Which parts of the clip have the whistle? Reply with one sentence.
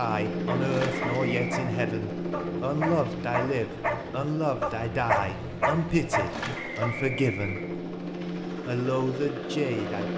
You can hear the whistle from 0.9 to 1.6 s and from 6.5 to 7.7 s.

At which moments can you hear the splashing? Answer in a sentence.
The splashing can be heard from 0.6 to 1.2 s and from 6.2 to 7.1 s.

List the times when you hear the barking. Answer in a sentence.
You can hear the barking from 0.3 to 6.9 s.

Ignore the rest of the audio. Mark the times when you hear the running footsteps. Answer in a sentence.
The running footsteps can't be heard in this clip.